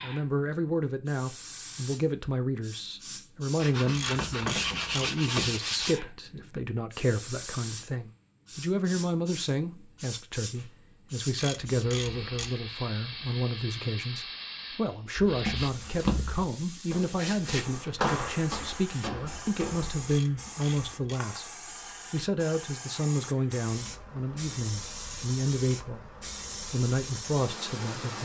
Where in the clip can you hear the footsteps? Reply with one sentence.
You can hear the footsteps from 15.2 to 20.1 s.